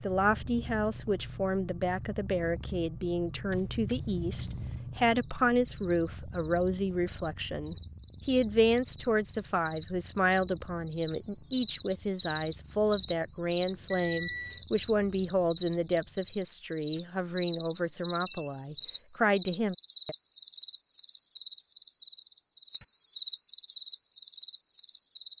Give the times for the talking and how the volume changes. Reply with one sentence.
The talking can be heard from 0.0 to 20.1 s, at a steady volume.